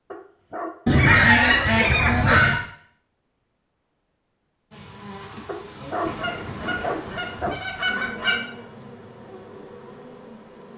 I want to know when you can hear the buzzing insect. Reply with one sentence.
The buzzing insect can be heard from 4.7 to 10.7 s.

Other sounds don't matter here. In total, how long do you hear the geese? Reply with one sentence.
The geese can be heard for 4 seconds in total.